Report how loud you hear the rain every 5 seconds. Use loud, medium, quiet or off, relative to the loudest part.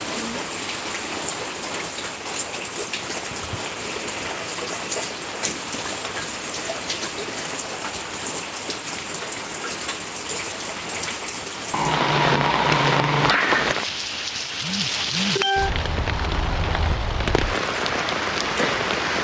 medium, medium, loud, loud.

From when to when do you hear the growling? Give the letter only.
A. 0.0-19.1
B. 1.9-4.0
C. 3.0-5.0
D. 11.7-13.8
D.